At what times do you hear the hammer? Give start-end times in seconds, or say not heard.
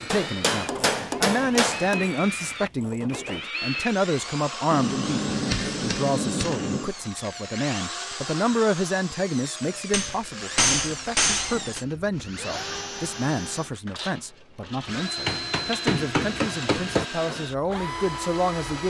0.1-1.9, 4.7-6.9, 9.9-11.8, 15.2-17.1.